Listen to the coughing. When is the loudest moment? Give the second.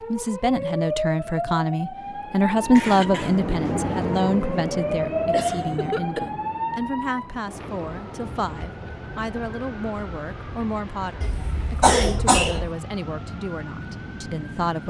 12 s.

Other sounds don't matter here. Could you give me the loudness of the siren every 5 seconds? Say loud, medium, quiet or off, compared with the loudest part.
loud, loud, medium.